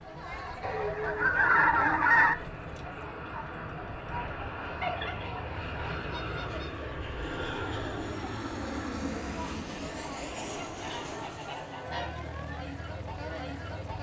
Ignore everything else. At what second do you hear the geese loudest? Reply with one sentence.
The volume of the geese peaks at 2 seconds.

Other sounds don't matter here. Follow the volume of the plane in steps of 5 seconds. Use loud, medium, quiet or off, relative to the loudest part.
medium, loud, medium.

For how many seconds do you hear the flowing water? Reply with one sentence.
The flowing water can't be heard in this clip.